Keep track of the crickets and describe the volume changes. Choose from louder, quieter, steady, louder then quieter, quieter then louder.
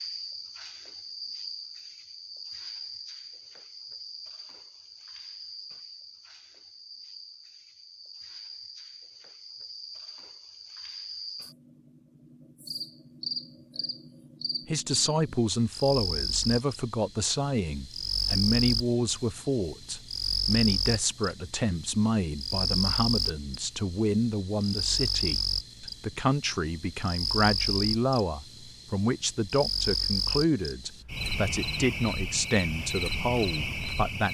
louder.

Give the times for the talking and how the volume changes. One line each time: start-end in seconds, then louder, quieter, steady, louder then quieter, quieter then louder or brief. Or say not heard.
14.7-34.2 steady.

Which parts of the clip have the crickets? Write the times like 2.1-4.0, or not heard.
0.0-34.2.